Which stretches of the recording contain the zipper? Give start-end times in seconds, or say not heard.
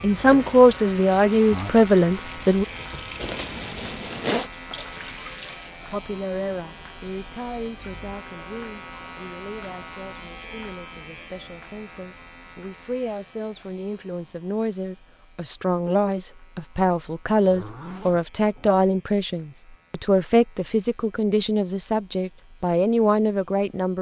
3.2-4.5, 17.4-18.8.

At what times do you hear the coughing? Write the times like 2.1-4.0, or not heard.
not heard.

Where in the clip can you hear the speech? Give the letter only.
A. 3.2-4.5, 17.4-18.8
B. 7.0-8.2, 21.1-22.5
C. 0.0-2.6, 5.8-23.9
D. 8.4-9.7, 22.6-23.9
C.